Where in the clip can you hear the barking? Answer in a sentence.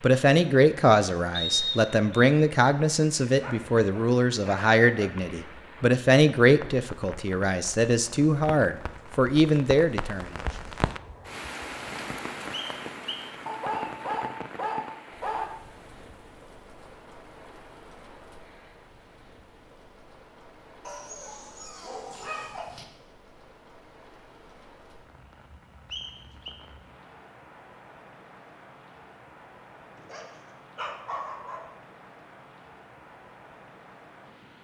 You can hear the barking from 3.2 to 5.1 s, from 13.4 to 15.4 s, from 20.9 to 22.9 s and from 29.9 to 31.6 s.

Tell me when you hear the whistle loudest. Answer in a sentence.
The loudest moment of the whistle is at 2 seconds.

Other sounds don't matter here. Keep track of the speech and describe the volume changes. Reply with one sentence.
The loudness of the speech stays about the same.